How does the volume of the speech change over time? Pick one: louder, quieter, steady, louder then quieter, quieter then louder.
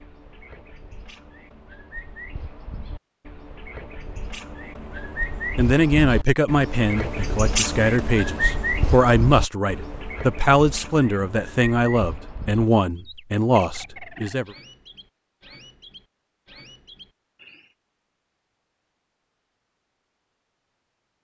steady.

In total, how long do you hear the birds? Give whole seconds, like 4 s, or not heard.
18 s.